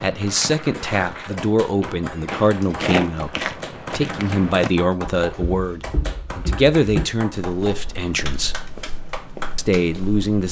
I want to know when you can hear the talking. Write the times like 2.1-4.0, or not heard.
0.0-8.6, 9.6-10.4.